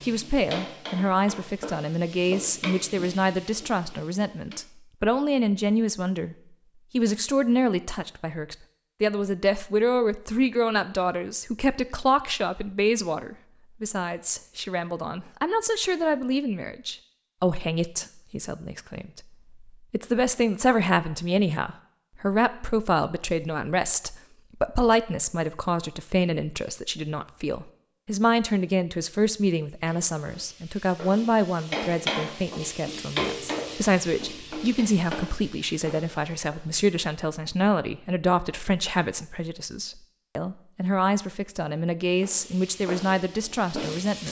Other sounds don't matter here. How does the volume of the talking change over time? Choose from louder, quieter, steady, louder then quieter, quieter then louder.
steady.